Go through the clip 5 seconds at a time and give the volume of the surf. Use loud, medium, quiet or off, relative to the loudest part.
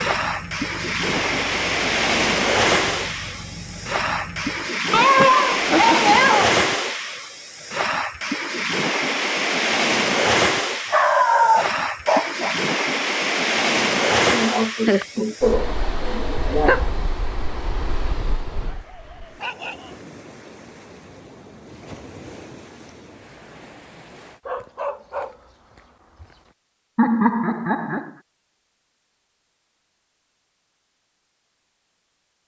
loud, loud, loud, quiet, quiet, off, off.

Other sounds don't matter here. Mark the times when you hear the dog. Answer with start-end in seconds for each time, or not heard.
4.9-6.5, 10.9-12.7, 18.6-20.1, 24.4-26.4.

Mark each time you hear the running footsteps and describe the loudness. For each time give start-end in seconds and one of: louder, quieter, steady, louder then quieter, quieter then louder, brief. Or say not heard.
not heard.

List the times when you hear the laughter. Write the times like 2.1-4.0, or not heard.
5.2-6.2, 14.2-16.9, 26.9-28.1.